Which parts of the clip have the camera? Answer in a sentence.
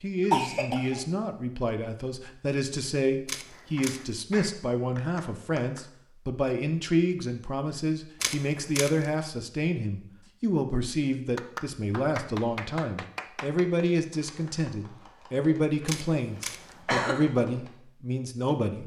You can hear the camera from 3.2 to 4.2 s, from 8.2 to 9.1 s and from 15.8 to 16.8 s.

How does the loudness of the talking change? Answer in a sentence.
The loudness of the talking stays about the same.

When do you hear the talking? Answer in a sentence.
The talking can be heard from 0.0 to 18.8 s.